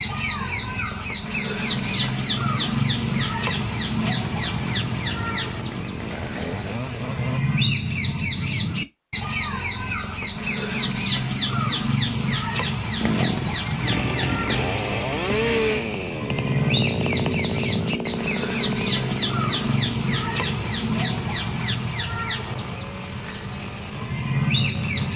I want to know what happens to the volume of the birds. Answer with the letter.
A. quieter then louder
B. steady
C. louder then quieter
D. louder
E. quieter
B.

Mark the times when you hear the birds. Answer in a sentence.
You can hear the birds from 0.0 to 25.1 s.